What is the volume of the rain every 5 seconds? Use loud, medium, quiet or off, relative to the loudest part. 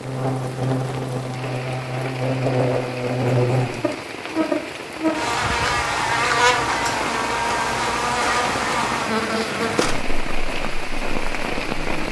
medium, loud, loud.